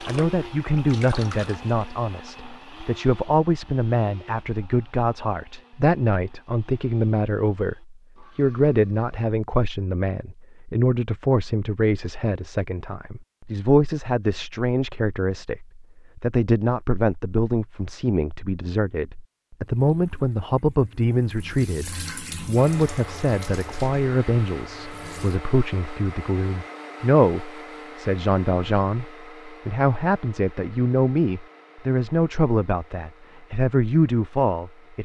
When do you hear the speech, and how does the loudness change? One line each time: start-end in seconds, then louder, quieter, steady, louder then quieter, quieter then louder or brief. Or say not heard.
0.1-35.0 steady.